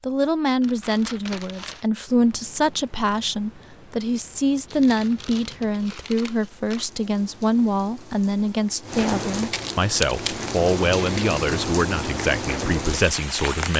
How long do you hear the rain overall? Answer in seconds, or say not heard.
12 s.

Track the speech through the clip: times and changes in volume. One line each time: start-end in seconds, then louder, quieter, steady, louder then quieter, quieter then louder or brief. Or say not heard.
0.0-13.7 steady.